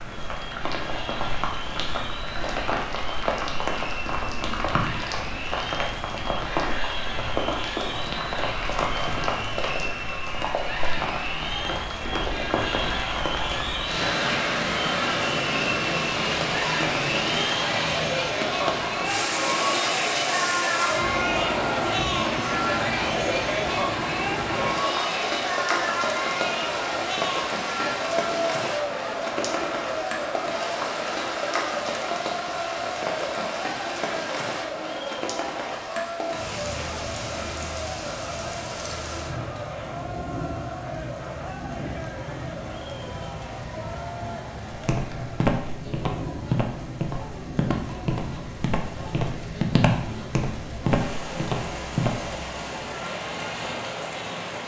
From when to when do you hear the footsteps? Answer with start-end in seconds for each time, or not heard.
44.7-52.4.